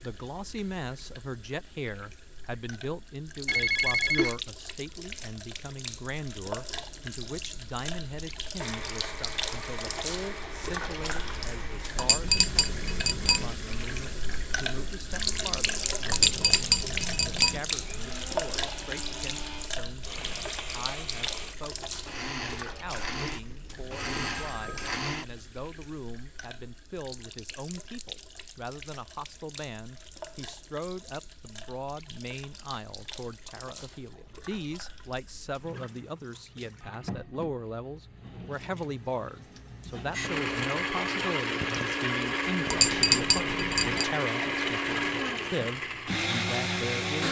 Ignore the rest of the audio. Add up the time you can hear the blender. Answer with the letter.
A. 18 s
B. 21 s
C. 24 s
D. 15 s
C.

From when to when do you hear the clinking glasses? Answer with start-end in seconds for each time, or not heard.
11.9-13.5, 16.1-17.6, 42.6-44.0.